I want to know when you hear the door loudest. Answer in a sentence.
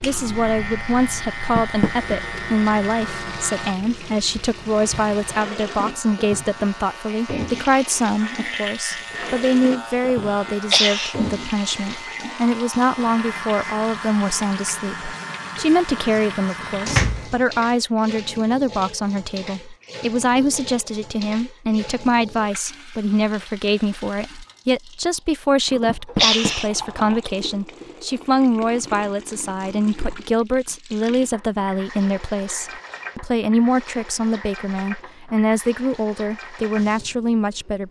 The volume of the door peaks at 17 seconds.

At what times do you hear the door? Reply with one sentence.
You can hear the door from 1.6 to 2.1 s, from 15.6 to 17.4 s and from 25.9 to 26.6 s.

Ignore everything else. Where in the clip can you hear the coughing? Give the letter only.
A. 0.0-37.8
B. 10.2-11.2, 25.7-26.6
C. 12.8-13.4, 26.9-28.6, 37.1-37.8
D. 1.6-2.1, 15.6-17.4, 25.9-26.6
B.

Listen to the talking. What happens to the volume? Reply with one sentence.
The loudness of the talking stays about the same.